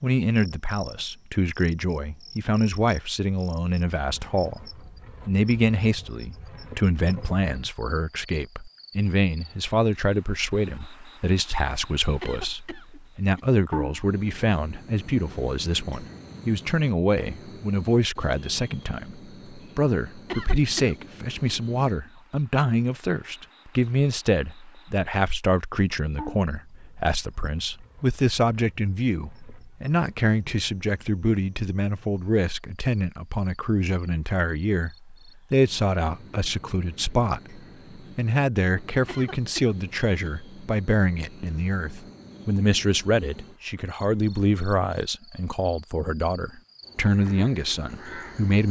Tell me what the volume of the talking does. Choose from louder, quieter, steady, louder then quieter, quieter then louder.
steady.